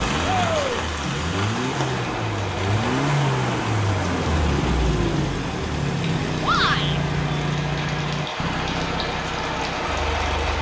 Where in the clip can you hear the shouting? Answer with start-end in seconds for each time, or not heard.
0.2-0.8, 6.4-7.0.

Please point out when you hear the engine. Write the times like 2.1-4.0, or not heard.
0.0-10.5.